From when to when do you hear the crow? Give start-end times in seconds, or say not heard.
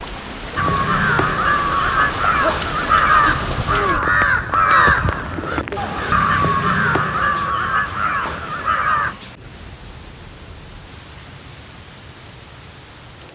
0.6-9.2.